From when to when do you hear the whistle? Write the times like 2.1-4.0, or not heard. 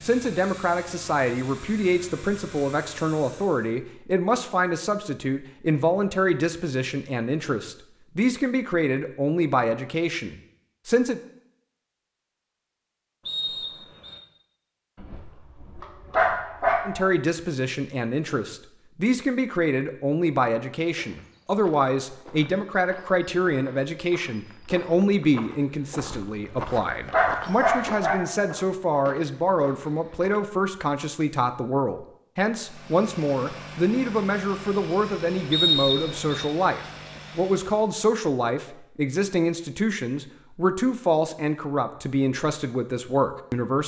13.2-14.2, 35.5-36.5.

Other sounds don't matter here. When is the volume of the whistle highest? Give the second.
36 s.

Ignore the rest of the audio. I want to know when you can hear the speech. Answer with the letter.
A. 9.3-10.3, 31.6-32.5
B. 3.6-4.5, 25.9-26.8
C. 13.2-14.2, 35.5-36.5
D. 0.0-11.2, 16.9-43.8
D.